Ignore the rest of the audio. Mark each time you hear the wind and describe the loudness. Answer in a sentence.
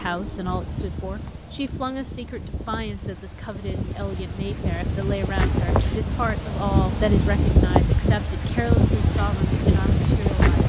You can hear the wind from 0.0 to 10.6 s, getting louder.